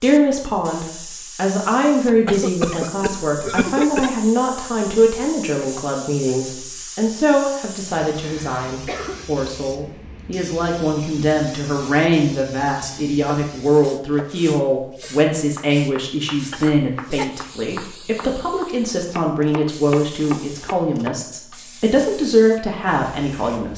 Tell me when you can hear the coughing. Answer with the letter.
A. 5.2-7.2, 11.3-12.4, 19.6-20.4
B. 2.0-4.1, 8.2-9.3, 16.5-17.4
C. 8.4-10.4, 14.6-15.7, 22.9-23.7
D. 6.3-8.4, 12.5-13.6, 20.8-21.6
B.